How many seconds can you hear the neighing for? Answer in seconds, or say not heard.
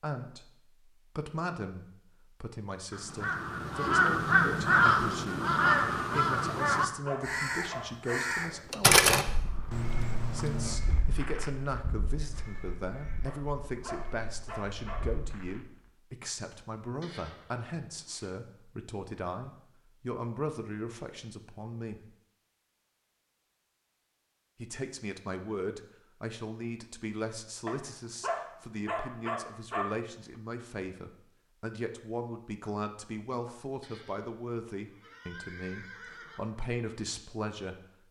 5 s.